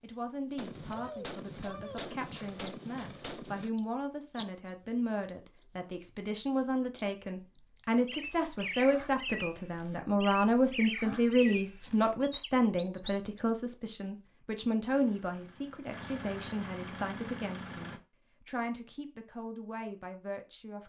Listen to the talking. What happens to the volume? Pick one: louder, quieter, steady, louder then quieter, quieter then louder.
louder then quieter.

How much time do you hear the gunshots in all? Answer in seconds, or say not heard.
3 s.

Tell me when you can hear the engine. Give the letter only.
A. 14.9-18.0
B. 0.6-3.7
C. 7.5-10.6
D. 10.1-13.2
A.